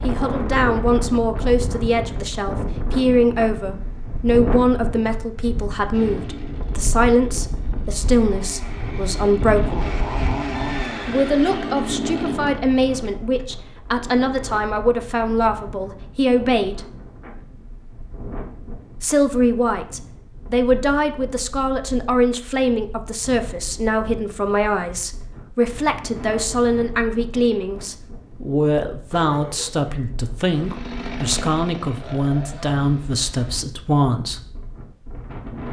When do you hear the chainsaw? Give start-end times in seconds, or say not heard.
5.9-13.4, 30.4-33.6.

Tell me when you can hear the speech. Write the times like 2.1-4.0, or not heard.
0.0-9.9, 11.1-16.9, 19.0-34.4.